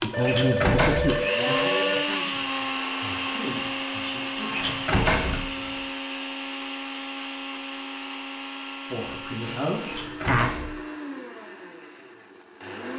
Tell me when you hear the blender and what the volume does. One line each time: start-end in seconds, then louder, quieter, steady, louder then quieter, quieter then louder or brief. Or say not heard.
0.0-12.9 quieter.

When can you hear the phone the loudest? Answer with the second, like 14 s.
1 s.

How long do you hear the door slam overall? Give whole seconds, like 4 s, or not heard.
3 s.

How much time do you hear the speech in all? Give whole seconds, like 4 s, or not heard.
7 s.